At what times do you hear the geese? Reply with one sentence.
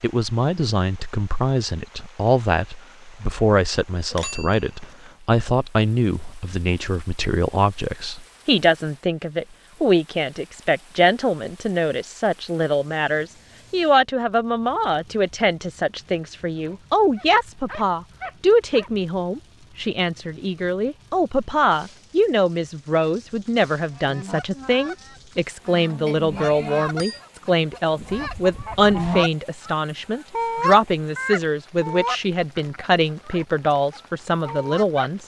The geese can be heard from 23.9 to 34.9 s.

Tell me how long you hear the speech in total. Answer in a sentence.
You can hear the speech for 35 seconds altogether.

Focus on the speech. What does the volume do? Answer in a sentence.
The loudness of the speech stays about the same.